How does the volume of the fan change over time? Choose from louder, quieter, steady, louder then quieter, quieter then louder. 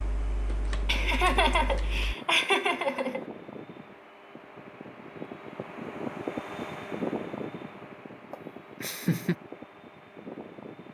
louder then quieter.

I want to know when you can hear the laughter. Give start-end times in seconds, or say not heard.
0.8-3.2, 8.3-9.3.